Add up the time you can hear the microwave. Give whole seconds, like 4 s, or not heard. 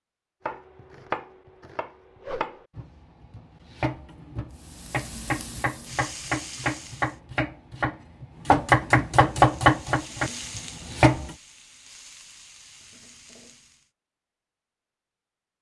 not heard.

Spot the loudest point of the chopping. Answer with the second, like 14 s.
10 s.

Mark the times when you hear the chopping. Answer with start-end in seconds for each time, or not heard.
0.5-11.3.